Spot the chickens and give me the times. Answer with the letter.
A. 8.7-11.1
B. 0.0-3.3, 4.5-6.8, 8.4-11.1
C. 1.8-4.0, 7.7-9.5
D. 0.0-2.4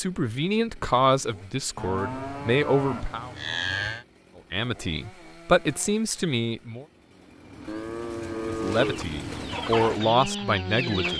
A.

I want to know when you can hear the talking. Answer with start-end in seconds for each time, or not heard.
0.0-3.3, 4.5-6.8, 8.4-11.1.